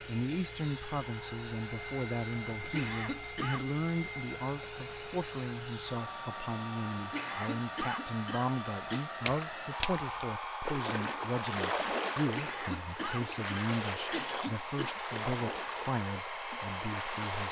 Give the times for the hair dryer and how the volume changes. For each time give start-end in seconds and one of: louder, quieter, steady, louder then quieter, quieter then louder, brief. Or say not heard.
0.0-17.4 steady.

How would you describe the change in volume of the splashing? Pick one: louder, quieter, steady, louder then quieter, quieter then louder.
quieter.